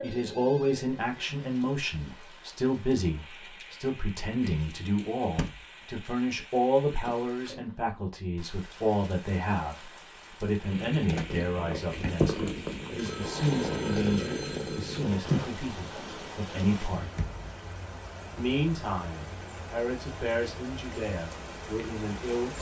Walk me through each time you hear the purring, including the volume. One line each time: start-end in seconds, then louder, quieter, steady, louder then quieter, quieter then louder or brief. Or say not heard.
10.6-17.2 louder then quieter.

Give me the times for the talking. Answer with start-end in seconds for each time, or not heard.
0.0-17.1, 18.4-22.5.